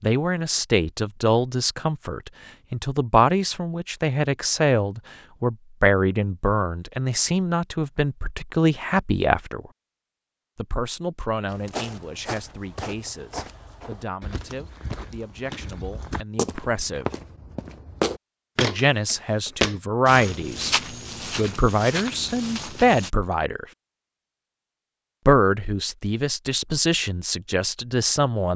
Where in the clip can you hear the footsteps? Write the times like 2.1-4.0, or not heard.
11.4-23.1.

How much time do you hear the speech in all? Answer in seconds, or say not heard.
24 s.